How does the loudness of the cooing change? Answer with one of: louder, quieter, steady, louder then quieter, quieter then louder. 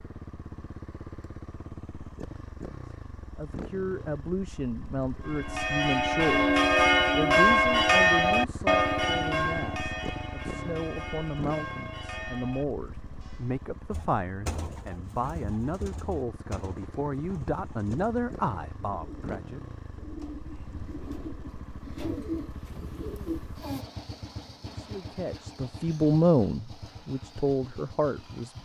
quieter then louder.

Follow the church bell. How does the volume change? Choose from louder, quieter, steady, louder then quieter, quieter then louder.
quieter.